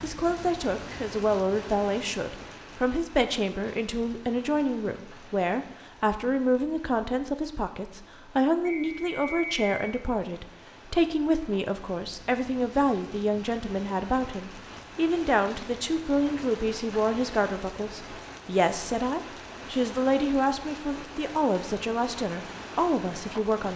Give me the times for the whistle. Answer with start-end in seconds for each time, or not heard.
8.7-9.8.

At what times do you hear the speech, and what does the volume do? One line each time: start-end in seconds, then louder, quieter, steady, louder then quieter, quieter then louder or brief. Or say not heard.
0.0-23.7 steady.